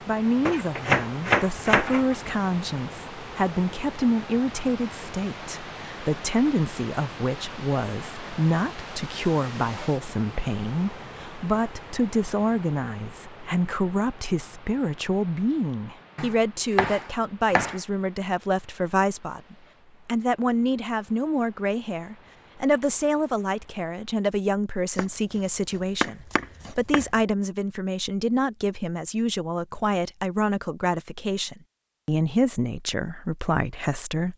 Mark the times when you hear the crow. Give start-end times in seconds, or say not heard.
not heard.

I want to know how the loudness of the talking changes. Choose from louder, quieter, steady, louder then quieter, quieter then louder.
steady.